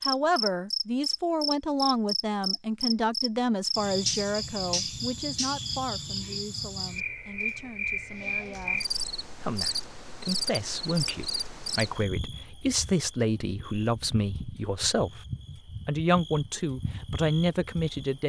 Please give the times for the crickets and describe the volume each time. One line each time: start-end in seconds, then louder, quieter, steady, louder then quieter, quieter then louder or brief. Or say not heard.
0.0-18.2 quieter.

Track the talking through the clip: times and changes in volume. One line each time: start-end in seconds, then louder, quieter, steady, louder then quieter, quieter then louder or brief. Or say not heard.
0.0-18.2 quieter then louder.